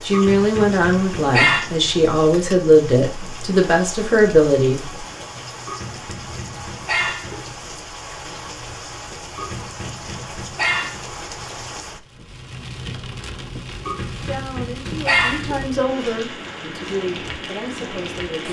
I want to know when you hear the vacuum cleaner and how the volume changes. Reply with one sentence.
The vacuum cleaner can't be heard in this clip.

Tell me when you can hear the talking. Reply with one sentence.
The talking can be heard from 0.0 to 5.0 s and from 14.2 to 18.4 s.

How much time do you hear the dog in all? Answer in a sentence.
The dog can be heard for 7 seconds in total.